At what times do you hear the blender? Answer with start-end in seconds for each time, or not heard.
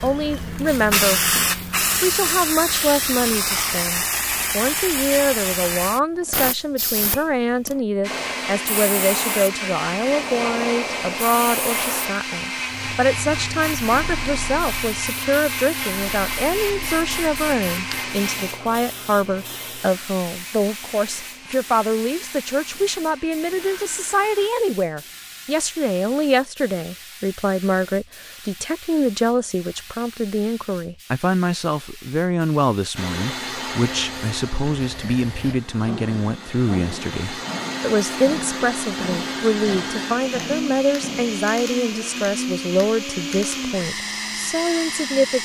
8.0-24.5, 33.0-45.4.